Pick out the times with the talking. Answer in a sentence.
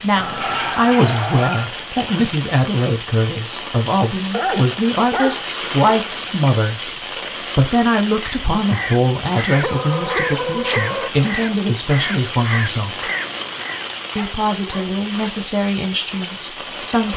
The talking can be heard from 0.0 to 6.9 s, from 7.5 to 13.1 s and from 14.2 to 17.1 s.